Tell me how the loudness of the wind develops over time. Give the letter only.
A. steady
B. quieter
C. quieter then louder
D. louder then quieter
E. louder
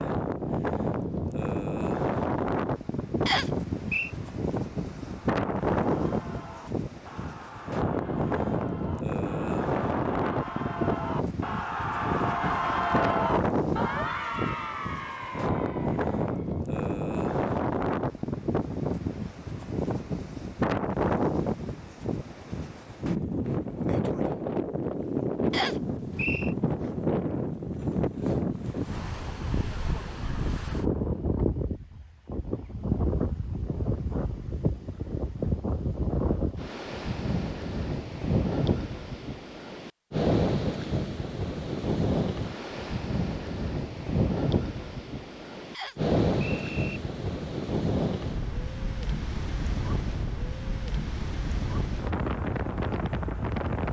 A.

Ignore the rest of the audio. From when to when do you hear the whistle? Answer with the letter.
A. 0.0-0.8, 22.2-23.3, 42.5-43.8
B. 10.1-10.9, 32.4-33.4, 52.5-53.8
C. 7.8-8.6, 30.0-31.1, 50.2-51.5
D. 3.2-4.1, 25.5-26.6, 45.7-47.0
D.